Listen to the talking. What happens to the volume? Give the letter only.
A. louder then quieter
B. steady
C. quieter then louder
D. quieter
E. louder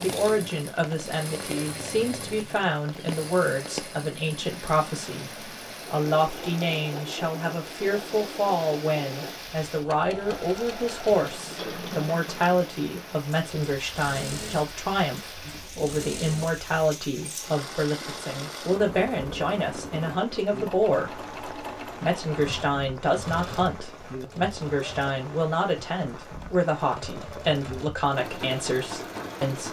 B.